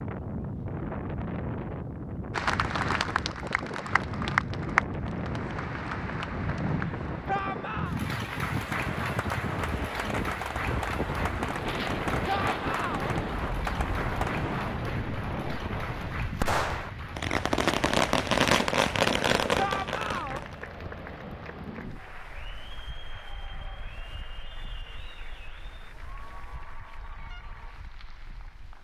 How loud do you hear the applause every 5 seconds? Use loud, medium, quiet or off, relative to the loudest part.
loud, medium, medium, quiet, quiet, quiet.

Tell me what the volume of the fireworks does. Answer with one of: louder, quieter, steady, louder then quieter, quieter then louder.
louder.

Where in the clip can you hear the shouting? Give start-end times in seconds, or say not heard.
7.2-8.0, 12.2-13.2, 19.6-20.4.